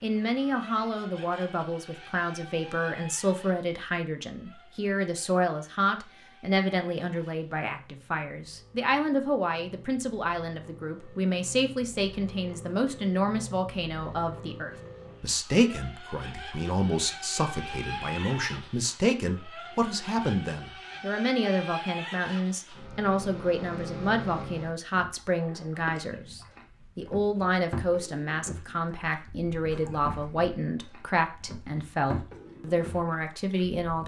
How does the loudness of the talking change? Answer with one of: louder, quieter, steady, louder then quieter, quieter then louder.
steady.